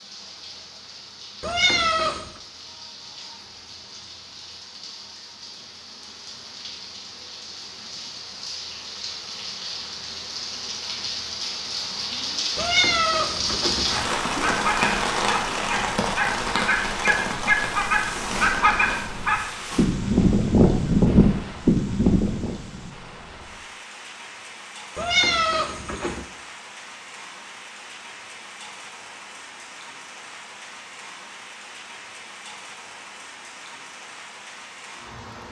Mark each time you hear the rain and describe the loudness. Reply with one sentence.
The rain can be heard from 0.0 to 35.4 s, getting louder then quieter.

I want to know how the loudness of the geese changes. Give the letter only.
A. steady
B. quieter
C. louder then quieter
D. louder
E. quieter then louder
D.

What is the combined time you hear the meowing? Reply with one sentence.
The meowing can be heard for 4 seconds in total.